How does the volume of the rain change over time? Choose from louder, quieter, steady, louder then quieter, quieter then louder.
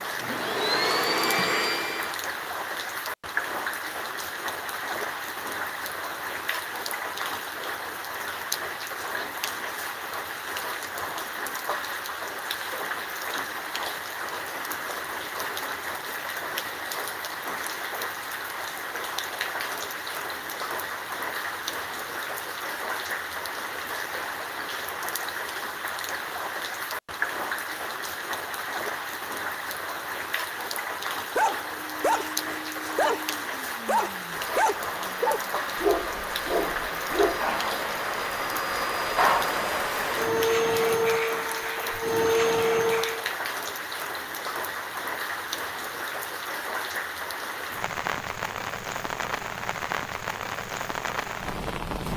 steady.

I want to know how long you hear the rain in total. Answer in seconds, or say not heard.
52 s.